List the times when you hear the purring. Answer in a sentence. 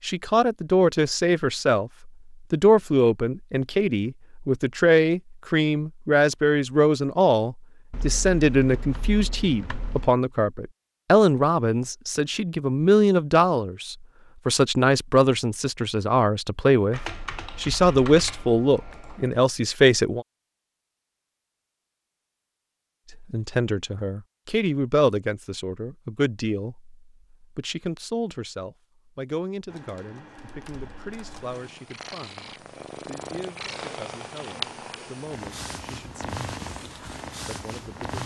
The purring can be heard from 30.4 to 38.2 s.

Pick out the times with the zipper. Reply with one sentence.
The zipper can't be heard in this clip.